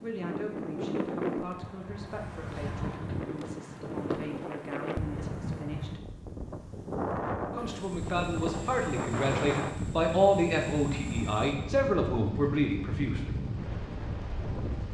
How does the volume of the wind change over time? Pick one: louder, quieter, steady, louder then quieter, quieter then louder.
steady.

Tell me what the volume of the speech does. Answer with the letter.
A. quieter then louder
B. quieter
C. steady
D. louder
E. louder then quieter
D.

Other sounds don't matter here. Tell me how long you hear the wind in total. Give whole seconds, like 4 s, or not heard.
15 s.